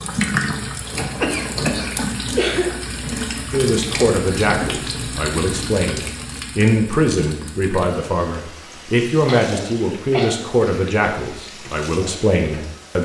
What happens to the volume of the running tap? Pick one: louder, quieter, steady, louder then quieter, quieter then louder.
quieter.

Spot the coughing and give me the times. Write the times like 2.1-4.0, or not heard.
0.9-2.7, 9.2-10.9.